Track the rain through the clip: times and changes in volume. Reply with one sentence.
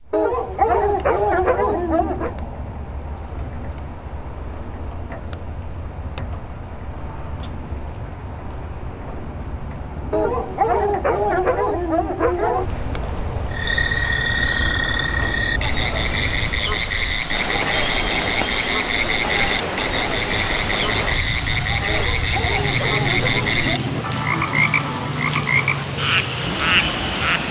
You can hear the rain from 0.0 to 27.4 s, getting louder.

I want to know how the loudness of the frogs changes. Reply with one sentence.
The volume of the frogs stays about the same.